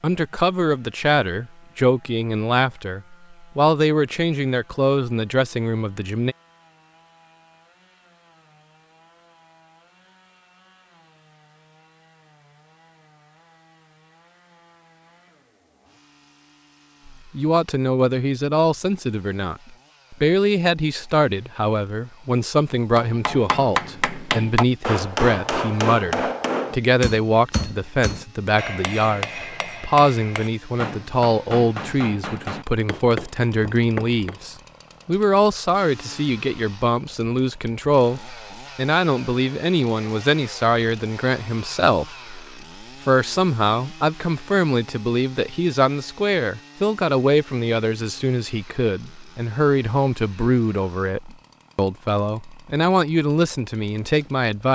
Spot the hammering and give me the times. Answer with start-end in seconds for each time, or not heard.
22.9-34.4.